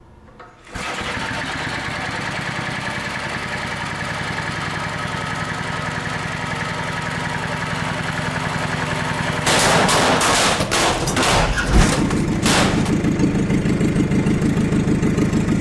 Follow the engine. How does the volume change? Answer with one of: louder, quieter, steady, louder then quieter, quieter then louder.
louder.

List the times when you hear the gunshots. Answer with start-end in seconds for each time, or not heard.
9.4-12.9.